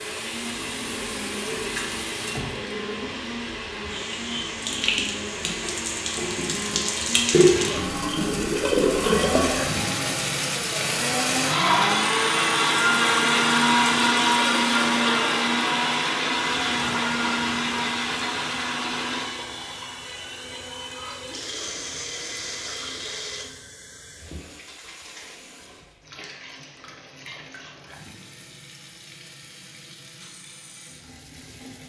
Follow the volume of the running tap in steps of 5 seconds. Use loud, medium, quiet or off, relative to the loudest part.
medium, loud, medium, quiet, quiet, quiet, quiet.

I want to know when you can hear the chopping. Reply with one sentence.
You can't hear the chopping here.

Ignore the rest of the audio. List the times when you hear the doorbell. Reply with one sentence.
You can't hear the doorbell here.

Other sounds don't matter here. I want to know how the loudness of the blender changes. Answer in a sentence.
The volume of the blender goes up, then down.